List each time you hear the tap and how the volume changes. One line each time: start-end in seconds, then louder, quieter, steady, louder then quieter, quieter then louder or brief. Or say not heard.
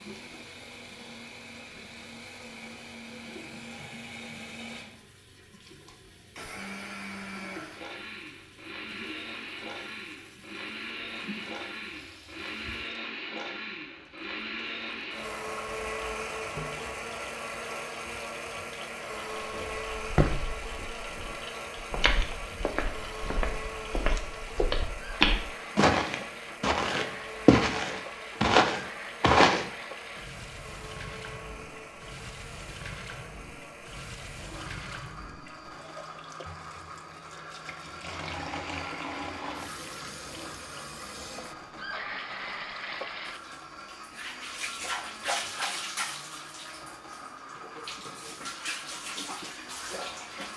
0.0-50.5 louder.